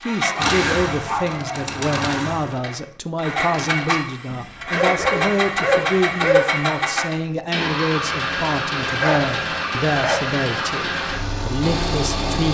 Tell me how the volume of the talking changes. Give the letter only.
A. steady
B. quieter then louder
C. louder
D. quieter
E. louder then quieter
A.